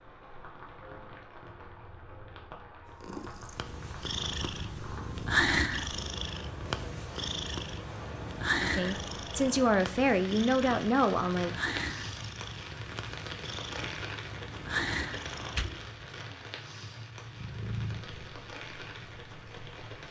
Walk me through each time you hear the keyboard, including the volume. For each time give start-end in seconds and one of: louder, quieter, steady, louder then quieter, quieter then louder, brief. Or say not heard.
not heard.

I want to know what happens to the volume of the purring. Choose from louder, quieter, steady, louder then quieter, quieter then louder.
quieter.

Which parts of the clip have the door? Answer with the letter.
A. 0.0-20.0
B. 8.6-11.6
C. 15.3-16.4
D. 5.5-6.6
C.